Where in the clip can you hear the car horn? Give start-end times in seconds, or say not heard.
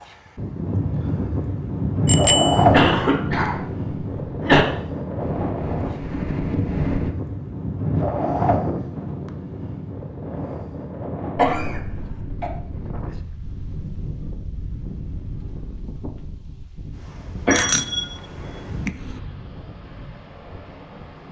not heard.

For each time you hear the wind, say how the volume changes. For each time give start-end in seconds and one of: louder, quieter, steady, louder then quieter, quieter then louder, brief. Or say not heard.
0.3-21.2 quieter.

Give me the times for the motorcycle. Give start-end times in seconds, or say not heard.
5.2-7.1.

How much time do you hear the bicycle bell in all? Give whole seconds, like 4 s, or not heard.
2 s.